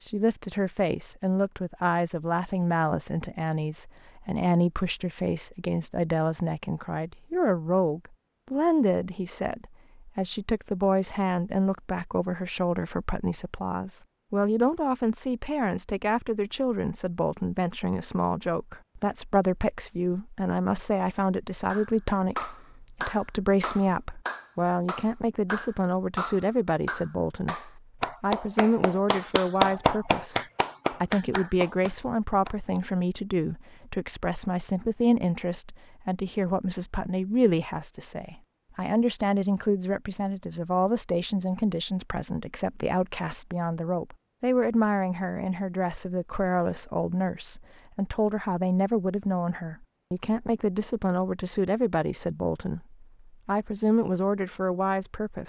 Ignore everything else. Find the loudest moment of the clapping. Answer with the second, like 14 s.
30 s.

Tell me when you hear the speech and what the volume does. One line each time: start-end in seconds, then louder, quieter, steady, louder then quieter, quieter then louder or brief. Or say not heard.
0.0-55.4 steady.